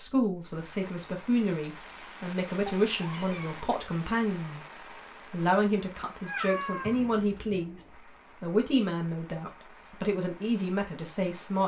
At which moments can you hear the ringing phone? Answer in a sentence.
The ringing phone can't be heard in this clip.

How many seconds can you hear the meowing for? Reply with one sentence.
You can hear the meowing for 2 seconds altogether.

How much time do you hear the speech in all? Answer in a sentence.
You can hear the speech for 11 seconds altogether.